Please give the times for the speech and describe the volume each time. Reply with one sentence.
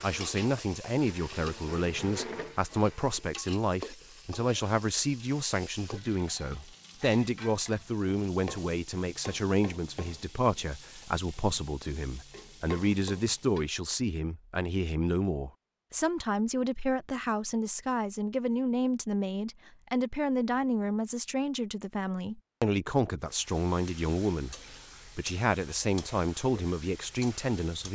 The speech can be heard from 0.0 to 27.8 s, at a steady volume.